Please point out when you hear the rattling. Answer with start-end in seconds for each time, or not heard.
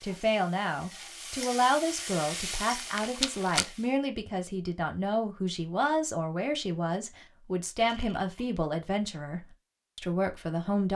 2.8-3.6, 7.8-8.5.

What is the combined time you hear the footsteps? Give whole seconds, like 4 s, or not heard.
not heard.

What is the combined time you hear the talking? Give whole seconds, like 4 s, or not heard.
11 s.